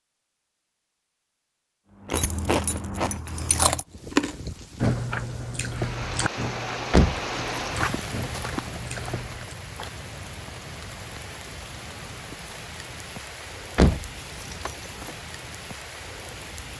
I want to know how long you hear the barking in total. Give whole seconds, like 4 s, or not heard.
not heard.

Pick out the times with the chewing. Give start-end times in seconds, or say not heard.
2.0-9.6.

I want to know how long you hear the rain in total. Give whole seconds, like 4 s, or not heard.
13 s.